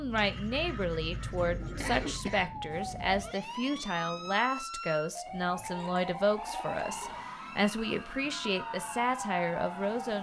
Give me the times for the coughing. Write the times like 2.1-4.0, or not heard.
1.8-2.6.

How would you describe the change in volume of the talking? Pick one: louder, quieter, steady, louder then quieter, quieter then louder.
steady.